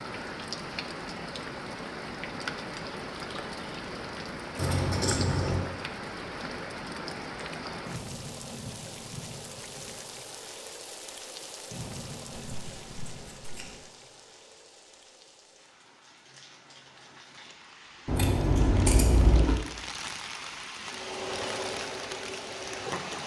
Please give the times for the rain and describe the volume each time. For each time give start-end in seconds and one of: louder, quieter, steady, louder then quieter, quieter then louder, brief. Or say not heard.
0.0-23.2 quieter then louder.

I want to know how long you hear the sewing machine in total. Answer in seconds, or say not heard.
2 s.